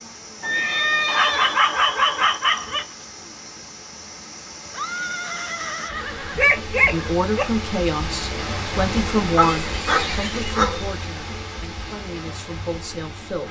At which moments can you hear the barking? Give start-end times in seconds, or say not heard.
1.1-2.9, 6.3-7.5, 9.3-10.8.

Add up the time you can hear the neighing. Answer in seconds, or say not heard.
5 s.